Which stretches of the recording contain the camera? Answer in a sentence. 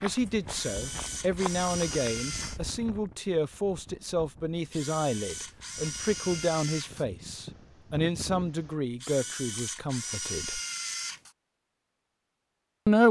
You can hear the camera from 0.5 to 2.6 s, from 4.7 to 7.0 s and from 9.0 to 11.3 s.